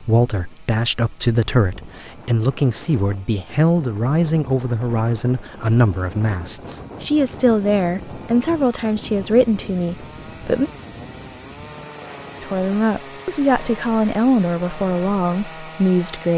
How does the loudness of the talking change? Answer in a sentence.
The loudness of the talking stays about the same.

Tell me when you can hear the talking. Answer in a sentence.
The talking can be heard from 0.0 to 10.7 s and from 12.4 to 16.3 s.